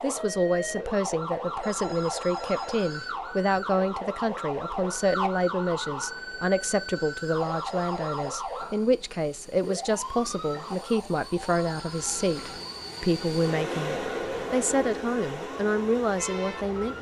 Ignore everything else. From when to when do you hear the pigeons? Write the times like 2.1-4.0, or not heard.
not heard.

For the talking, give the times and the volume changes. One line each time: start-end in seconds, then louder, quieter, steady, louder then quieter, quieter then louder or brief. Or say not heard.
0.0-16.9 steady.